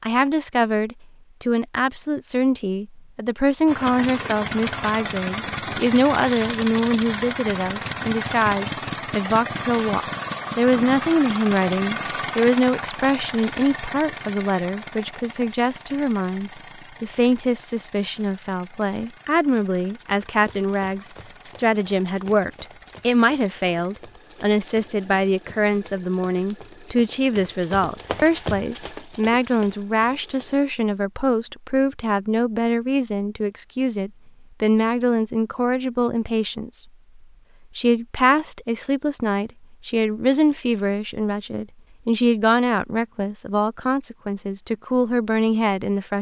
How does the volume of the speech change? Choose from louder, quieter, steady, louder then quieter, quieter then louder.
steady.